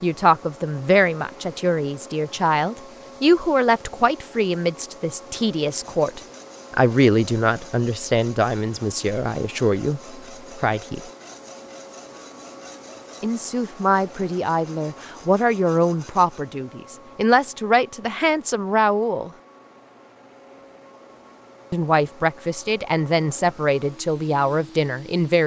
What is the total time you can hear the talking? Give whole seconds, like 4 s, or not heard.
21 s.